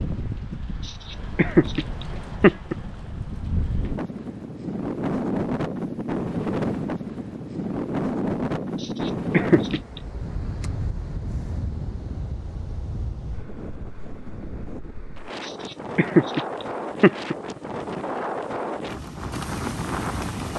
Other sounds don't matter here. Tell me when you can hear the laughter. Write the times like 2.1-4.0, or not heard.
0.8-2.8, 8.8-10.0, 15.4-17.4.